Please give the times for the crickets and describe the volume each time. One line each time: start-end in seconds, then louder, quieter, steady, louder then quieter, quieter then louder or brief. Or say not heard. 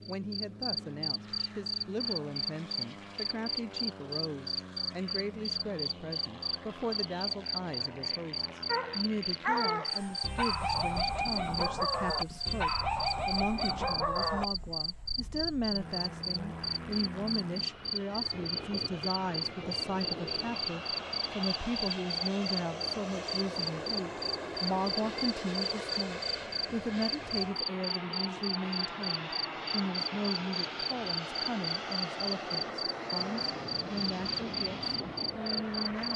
0.0-36.1 steady.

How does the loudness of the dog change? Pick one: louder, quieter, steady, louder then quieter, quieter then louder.
steady.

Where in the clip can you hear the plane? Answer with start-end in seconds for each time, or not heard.
0.0-36.1.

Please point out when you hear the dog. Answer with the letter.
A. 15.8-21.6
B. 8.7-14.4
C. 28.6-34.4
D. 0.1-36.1
B.